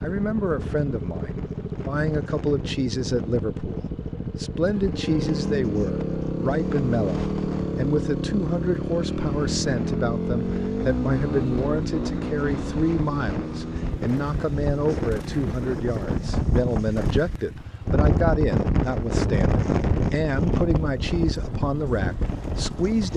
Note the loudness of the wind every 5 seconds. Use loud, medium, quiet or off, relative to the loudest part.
quiet, quiet, medium, loud, loud.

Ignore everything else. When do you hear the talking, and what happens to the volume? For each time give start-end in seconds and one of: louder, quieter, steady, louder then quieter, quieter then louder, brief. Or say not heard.
0.0-23.1 steady.